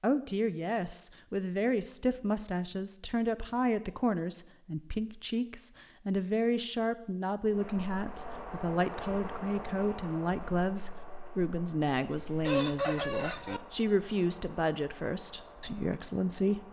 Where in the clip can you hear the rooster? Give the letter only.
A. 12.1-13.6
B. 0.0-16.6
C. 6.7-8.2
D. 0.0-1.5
A.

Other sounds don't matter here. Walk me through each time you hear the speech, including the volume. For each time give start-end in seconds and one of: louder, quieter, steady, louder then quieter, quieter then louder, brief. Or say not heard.
0.0-16.6 steady.